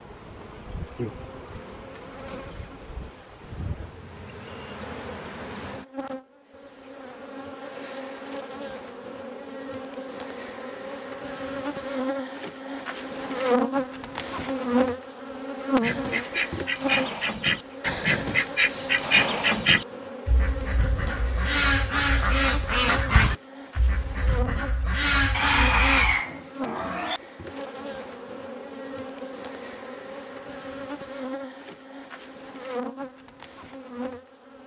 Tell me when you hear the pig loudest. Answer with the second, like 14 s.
26 s.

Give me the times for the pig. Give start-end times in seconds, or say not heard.
25.3-27.2.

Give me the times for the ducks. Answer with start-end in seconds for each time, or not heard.
15.8-26.2.